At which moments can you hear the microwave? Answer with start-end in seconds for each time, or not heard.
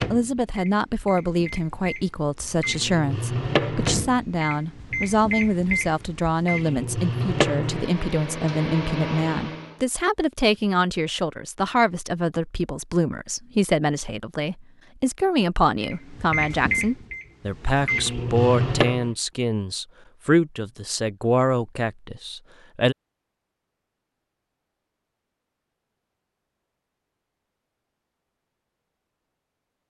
0.0-9.8, 15.8-19.1.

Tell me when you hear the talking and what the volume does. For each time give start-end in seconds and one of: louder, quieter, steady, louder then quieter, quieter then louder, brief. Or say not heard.
0.0-22.9 steady.